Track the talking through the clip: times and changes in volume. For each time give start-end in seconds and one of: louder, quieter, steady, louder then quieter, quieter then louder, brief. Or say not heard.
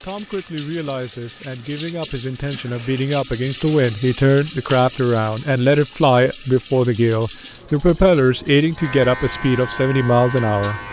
0.0-10.8 louder.